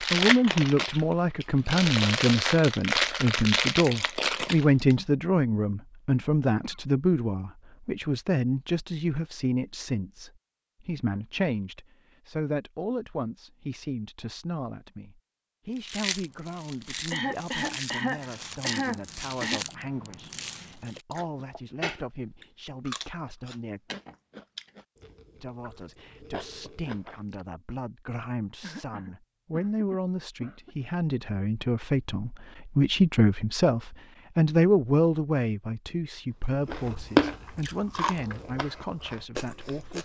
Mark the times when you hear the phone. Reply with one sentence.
You can't hear the phone here.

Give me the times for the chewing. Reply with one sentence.
The chewing can be heard from 0.0 to 5.0 s, from 15.8 to 27.4 s and from 36.6 to 39.9 s.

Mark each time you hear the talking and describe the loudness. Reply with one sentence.
The talking can be heard from 0.0 to 23.8 s, getting quieter; and from 25.4 to 39.9 s, getting louder then quieter.